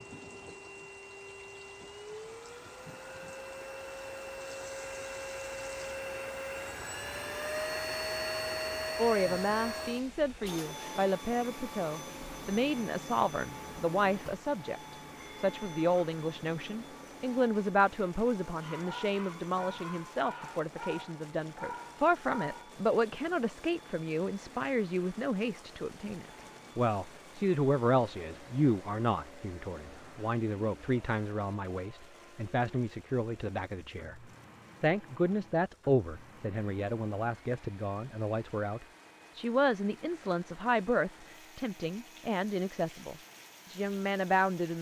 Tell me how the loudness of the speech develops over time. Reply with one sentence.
The loudness of the speech stays about the same.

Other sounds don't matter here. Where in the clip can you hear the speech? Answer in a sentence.
You can hear the speech from 8.9 to 44.7 s.